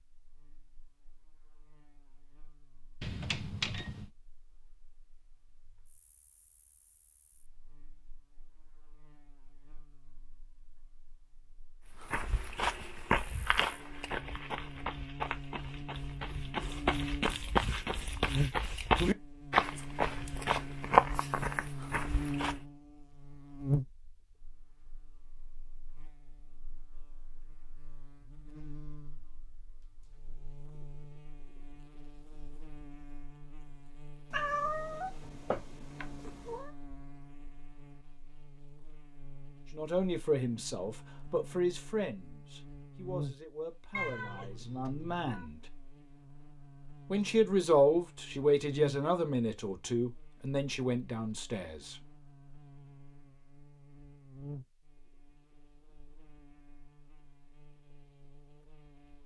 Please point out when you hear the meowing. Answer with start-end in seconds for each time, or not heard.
3.0-4.1, 34.3-36.7, 43.9-45.5.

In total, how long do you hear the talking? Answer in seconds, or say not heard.
11 s.